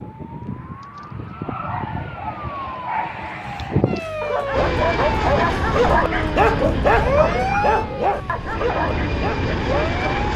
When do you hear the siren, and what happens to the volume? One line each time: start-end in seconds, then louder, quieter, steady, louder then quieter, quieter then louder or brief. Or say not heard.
0.0-10.3 louder then quieter.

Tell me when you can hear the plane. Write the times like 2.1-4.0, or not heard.
4.5-10.3.